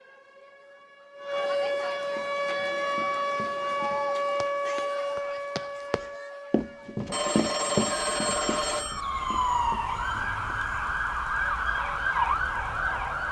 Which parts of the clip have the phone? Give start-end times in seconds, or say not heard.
7.1-9.1.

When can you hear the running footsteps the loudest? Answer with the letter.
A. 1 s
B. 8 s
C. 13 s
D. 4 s
B.